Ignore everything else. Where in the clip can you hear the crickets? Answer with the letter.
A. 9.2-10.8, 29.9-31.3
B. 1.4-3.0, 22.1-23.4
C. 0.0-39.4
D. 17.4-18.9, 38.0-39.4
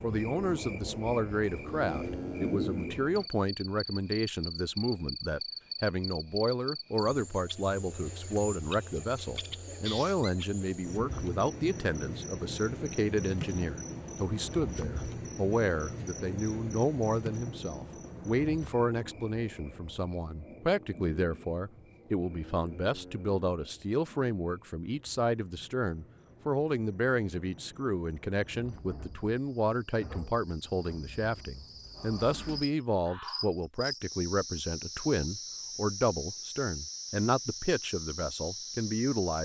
C.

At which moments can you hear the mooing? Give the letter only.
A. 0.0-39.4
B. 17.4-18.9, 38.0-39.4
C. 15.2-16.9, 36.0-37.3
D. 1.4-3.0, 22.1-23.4
D.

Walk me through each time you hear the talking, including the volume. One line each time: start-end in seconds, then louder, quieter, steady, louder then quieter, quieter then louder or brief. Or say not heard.
0.0-39.4 steady.